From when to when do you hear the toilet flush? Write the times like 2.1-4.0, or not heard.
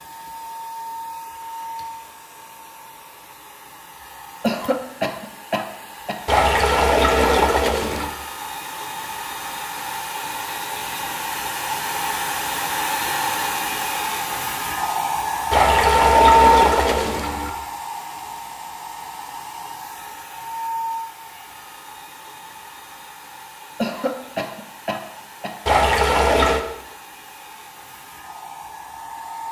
6.2-8.2, 15.5-17.5, 25.6-26.6.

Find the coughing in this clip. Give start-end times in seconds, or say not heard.
4.4-6.2, 23.8-25.6.